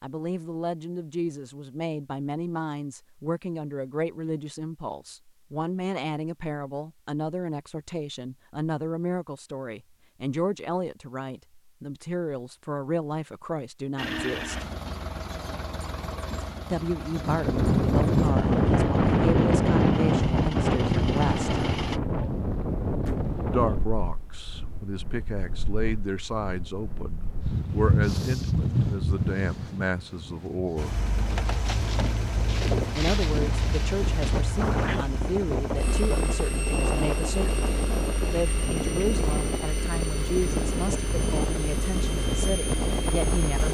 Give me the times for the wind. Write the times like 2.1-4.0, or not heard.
17.1-43.6.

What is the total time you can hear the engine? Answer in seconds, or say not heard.
21 s.